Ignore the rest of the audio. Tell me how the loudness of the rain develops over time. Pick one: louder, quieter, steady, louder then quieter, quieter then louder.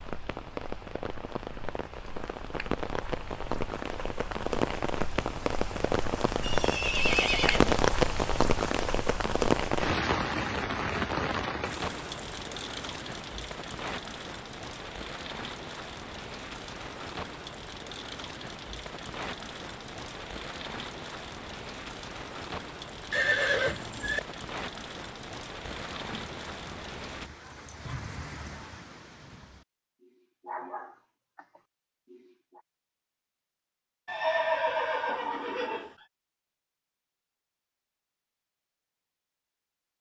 louder then quieter.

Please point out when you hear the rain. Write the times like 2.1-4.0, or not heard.
0.0-27.3.